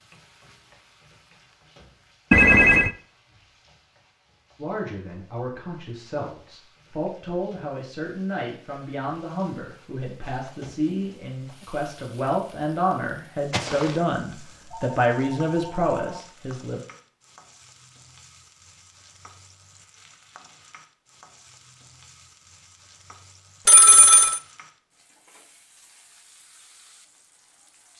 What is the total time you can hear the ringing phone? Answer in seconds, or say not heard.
3 s.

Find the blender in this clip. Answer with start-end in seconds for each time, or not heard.
not heard.